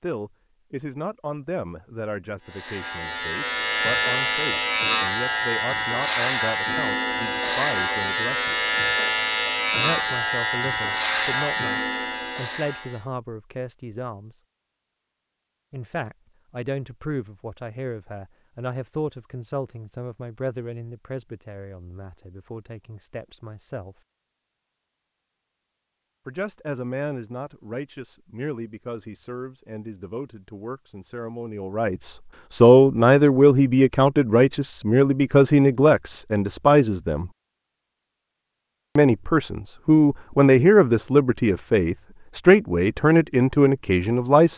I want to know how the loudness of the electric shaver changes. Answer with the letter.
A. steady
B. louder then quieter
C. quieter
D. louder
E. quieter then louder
A.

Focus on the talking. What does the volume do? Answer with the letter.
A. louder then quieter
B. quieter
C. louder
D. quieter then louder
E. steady
C.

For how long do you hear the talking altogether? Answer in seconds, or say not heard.
38 s.